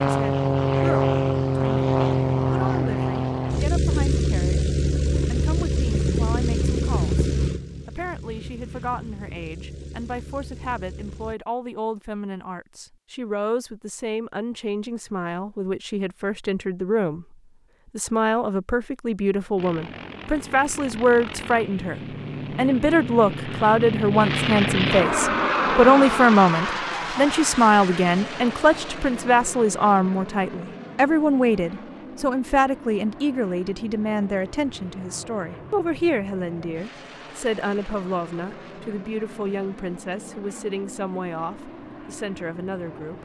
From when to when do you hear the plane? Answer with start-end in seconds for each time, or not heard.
0.0-11.3, 19.6-43.2.